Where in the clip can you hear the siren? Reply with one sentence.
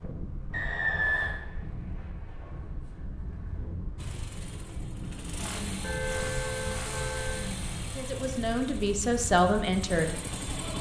You can't hear the siren here.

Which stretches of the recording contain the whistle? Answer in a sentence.
The whistle can be heard from 0.5 to 1.4 s.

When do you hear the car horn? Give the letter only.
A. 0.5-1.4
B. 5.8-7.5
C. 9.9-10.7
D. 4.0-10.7
B.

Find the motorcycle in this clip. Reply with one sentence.
The motorcycle can be heard from 4.0 to 10.7 s.